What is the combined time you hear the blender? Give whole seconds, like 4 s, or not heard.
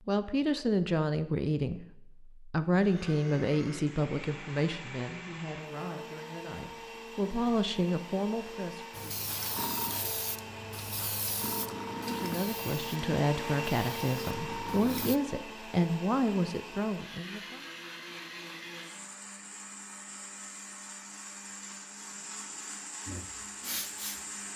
22 s.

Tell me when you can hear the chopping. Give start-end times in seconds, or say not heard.
not heard.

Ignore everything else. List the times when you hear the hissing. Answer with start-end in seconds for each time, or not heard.
8.9-15.2, 23.1-24.3.